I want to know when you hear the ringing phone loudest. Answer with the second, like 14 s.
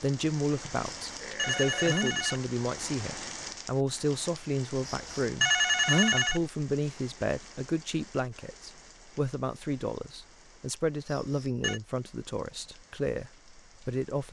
6 s.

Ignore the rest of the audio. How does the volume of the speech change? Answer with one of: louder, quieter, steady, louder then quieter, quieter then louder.
steady.